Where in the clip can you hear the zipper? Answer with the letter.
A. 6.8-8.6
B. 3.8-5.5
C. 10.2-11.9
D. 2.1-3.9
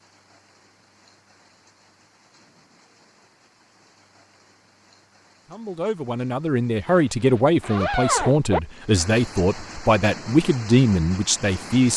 A.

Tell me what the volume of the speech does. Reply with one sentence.
The volume of the speech stays about the same.